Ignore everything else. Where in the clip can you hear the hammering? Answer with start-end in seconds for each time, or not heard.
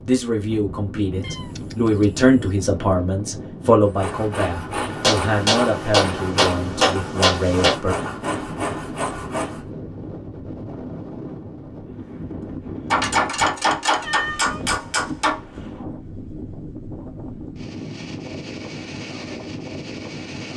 5.0-7.8, 12.9-15.4.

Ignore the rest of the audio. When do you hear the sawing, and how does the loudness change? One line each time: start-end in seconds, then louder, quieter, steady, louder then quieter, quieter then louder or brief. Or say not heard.
3.9-9.7 steady.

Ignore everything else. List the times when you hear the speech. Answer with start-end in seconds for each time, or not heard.
0.0-8.0.